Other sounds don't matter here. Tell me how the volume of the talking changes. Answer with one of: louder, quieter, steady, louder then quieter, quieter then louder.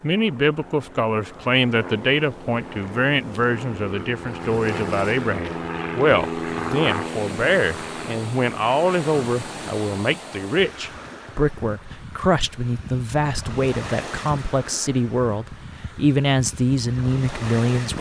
steady.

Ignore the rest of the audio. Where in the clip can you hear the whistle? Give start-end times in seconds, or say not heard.
not heard.